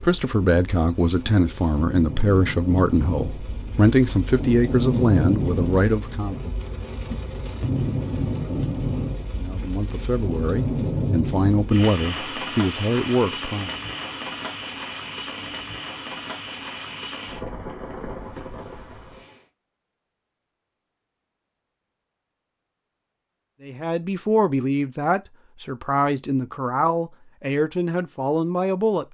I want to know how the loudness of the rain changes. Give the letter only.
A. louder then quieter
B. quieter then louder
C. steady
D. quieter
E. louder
A.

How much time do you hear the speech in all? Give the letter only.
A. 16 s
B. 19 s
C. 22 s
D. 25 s
A.